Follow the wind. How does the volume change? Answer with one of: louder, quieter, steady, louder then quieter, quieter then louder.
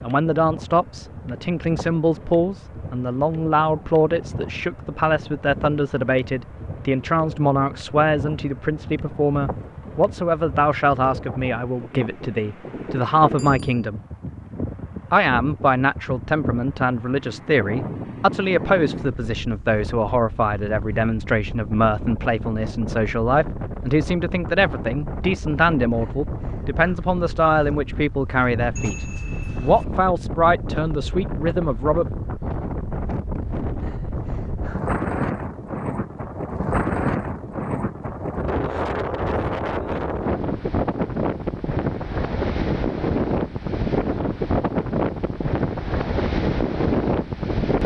louder.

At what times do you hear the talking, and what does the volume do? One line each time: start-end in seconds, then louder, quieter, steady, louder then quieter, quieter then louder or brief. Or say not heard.
0.0-14.0 steady
15.1-32.1 steady.